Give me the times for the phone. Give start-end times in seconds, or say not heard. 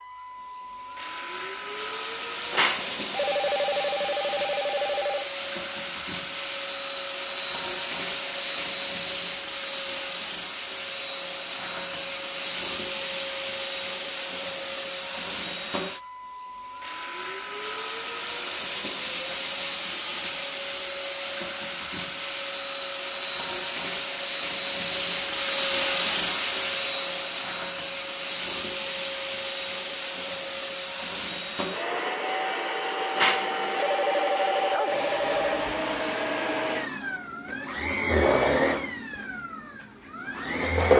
2.5-5.2, 33.1-35.7.